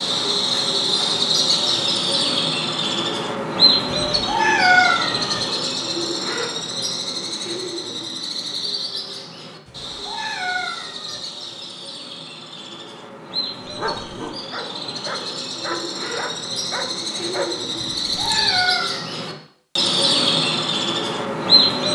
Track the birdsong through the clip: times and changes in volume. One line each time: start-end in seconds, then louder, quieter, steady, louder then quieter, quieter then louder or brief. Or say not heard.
0.0-21.8 quieter then louder.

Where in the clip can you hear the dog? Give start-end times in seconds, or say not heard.
13.6-18.6.